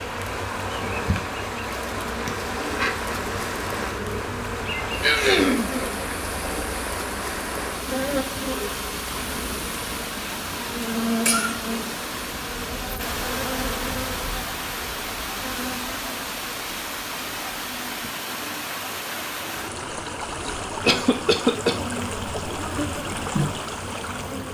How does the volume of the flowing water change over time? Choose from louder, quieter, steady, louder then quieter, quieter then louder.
steady.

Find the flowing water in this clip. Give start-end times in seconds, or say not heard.
0.0-24.4.